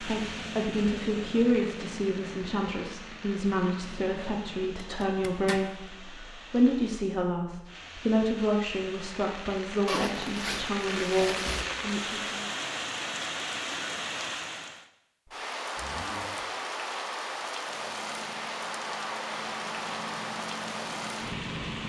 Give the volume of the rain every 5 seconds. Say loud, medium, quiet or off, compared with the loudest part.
medium, medium, loud, loud, loud.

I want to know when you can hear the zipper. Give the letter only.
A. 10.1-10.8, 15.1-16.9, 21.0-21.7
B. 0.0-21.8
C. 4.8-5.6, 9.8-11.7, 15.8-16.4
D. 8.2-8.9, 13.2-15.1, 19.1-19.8
C.